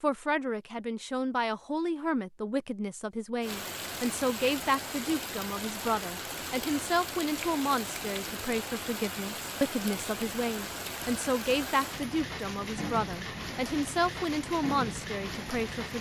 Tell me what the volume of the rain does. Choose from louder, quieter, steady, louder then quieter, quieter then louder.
steady.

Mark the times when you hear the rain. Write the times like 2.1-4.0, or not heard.
3.4-15.9.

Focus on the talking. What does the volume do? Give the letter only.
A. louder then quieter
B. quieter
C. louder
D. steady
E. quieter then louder
D.